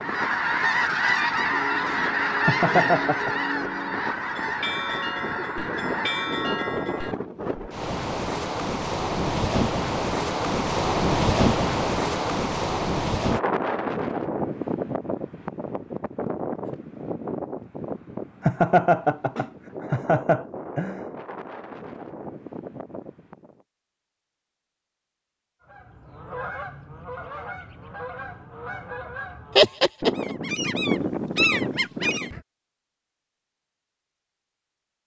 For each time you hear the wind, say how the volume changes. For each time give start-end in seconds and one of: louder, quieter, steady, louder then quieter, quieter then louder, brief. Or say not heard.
0.0-23.6 louder then quieter.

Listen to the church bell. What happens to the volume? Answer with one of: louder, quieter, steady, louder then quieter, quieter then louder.
louder.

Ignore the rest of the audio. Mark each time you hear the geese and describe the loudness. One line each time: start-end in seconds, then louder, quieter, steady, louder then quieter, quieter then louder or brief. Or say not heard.
0.0-6.4 quieter
25.6-32.4 louder.